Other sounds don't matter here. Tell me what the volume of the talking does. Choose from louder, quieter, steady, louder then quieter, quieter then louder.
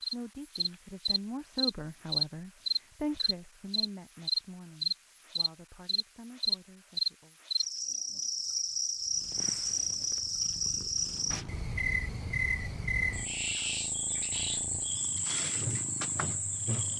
quieter.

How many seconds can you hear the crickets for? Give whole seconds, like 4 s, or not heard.
17 s.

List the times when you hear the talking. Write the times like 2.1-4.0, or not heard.
0.1-7.3.